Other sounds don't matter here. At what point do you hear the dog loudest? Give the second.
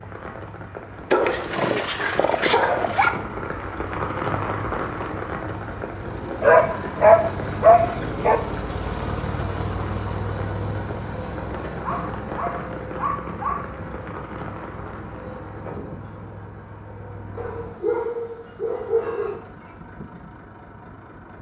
7 s.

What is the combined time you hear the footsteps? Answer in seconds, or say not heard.
not heard.